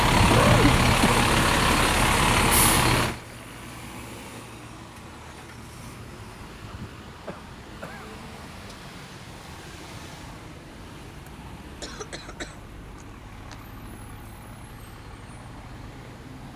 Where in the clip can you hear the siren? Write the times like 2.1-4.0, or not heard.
not heard.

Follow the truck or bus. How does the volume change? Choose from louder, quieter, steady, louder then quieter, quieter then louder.
quieter.